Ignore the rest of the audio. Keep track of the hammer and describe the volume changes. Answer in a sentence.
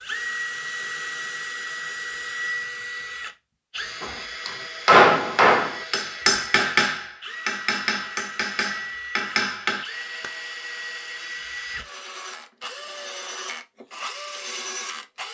The volume of the hammer goes down.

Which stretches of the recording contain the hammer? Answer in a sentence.
The hammer can be heard from 4.0 to 10.3 s.